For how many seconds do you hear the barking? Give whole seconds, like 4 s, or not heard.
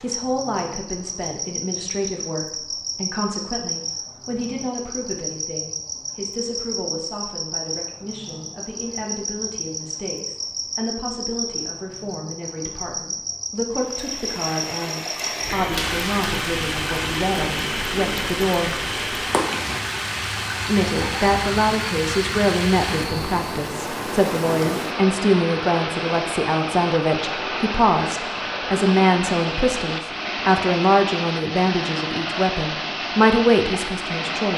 not heard.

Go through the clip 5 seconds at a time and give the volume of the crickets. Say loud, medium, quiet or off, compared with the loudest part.
loud, loud, loud, loud, loud, off, off.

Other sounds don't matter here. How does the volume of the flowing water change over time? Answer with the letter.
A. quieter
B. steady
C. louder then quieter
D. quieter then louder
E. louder
B.